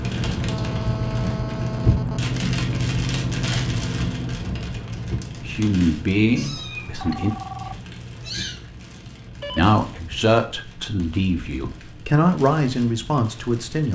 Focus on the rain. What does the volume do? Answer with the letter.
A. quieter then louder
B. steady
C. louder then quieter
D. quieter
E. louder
D.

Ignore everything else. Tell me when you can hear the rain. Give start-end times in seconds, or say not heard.
0.0-13.8.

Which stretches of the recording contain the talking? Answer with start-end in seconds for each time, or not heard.
5.4-7.3, 9.6-13.8.